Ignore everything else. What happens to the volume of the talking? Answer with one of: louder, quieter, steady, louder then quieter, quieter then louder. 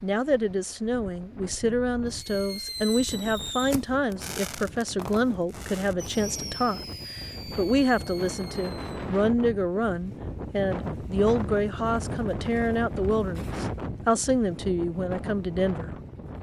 steady.